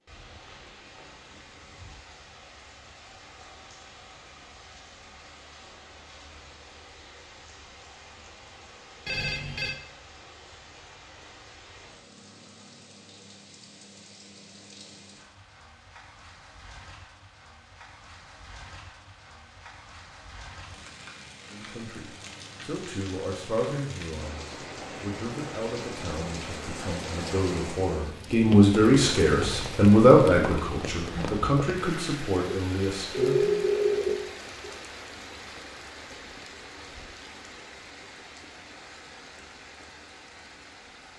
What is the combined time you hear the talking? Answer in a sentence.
You can hear the talking for 12 seconds altogether.